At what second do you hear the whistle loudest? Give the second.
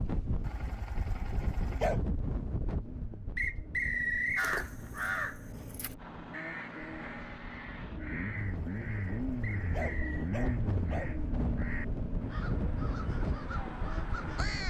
4 s.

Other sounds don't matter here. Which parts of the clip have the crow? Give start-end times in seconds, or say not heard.
4.3-14.6.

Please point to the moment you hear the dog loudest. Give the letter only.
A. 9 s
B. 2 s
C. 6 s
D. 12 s
B.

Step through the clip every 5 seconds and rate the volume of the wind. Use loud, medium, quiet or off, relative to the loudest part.
loud, medium, loud.